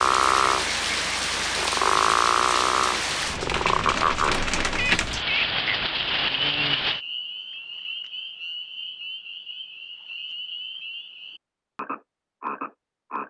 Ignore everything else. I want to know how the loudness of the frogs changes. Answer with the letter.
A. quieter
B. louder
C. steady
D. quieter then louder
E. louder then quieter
A.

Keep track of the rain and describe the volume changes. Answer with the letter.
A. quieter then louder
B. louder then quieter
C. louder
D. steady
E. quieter
D.